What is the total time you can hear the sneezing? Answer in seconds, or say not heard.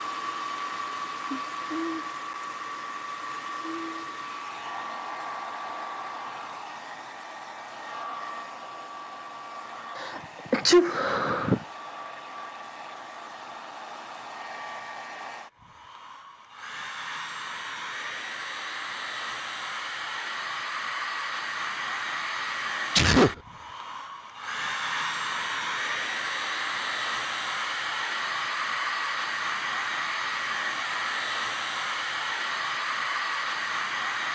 2 s.